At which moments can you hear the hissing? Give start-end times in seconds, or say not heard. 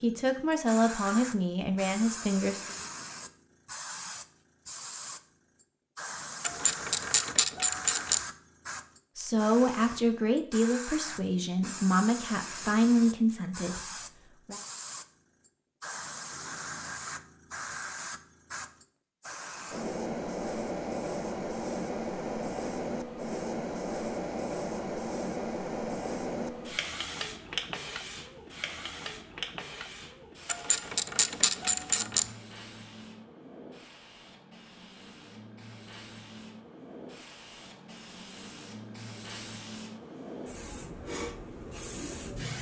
0.0-42.5.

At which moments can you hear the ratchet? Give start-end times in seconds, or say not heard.
6.4-8.2, 30.4-32.2.